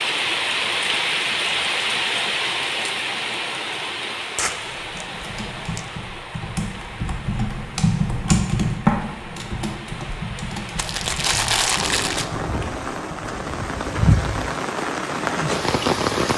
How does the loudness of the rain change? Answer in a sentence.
The volume of the rain goes down, then up.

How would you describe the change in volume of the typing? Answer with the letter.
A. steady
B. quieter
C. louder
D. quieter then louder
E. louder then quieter
E.